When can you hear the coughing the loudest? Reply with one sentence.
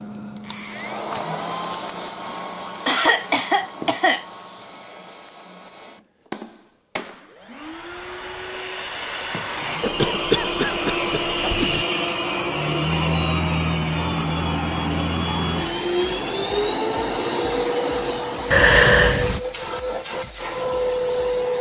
The volume of the coughing peaks at 19 seconds.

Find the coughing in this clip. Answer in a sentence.
The coughing can be heard from 2.9 to 4.2 s, from 9.8 to 11.8 s and from 18.5 to 19.4 s.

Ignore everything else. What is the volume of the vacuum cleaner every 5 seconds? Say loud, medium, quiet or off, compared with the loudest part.
medium, medium, loud, loud, loud.